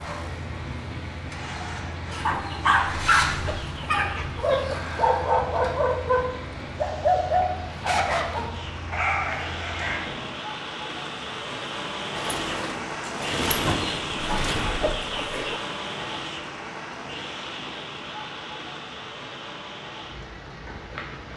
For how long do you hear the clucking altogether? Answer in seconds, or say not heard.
5 s.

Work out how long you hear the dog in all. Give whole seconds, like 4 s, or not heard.
8 s.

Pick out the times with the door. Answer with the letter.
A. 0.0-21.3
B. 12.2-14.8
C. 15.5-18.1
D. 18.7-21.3
B.